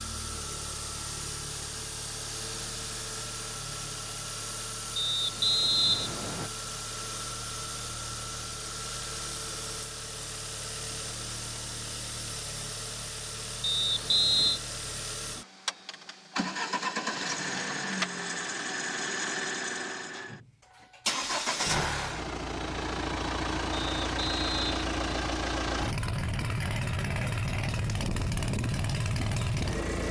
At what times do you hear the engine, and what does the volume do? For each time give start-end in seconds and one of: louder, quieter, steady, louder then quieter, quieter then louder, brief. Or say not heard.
0.0-30.0 louder.